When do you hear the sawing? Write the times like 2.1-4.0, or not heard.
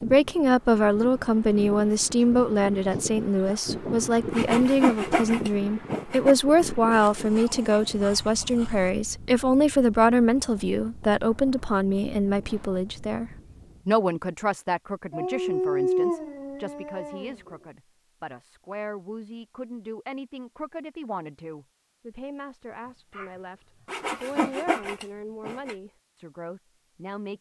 4.3-6.3, 23.9-25.8.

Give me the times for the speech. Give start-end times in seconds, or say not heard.
0.0-27.3.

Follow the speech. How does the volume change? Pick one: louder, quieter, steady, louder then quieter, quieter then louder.
quieter.